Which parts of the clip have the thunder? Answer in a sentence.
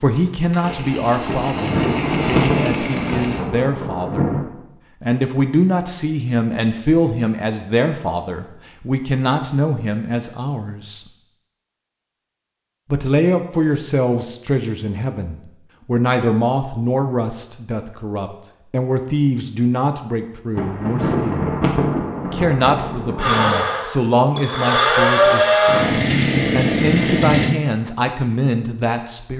The thunder can be heard from 1.2 to 4.5 s and from 20.6 to 23.5 s.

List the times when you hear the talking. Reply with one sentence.
The talking can be heard from 0.0 to 4.3 s, from 5.0 to 11.1 s, from 12.9 to 21.6 s and from 22.2 to 29.3 s.